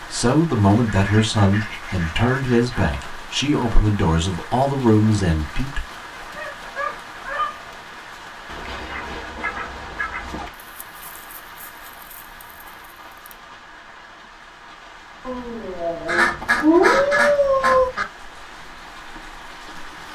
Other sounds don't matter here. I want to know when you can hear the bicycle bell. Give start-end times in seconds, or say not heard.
not heard.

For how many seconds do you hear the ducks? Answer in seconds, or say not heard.
6 s.